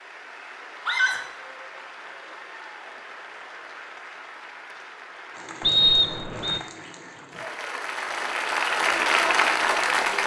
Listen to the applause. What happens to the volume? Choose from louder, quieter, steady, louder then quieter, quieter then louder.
louder.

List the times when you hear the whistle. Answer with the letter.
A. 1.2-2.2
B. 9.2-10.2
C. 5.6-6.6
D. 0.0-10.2
C.